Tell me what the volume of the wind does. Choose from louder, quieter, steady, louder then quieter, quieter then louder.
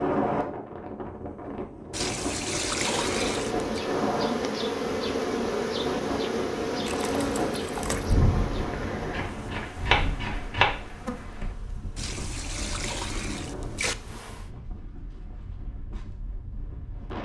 quieter.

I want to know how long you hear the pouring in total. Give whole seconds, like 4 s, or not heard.
5 s.